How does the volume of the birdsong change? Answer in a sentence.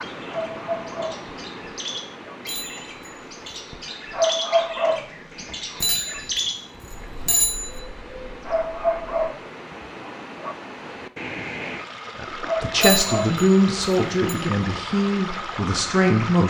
The volume of the birdsong goes up, then down.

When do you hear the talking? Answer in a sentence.
The talking can be heard from 12.2 to 16.4 s.